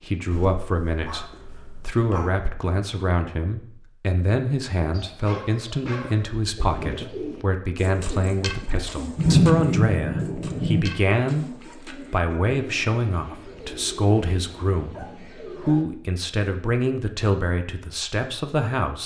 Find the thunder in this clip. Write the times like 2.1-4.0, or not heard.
9.2-10.8.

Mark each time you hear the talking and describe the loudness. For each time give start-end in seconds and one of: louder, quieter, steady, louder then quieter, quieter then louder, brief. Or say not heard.
0.1-19.0 steady.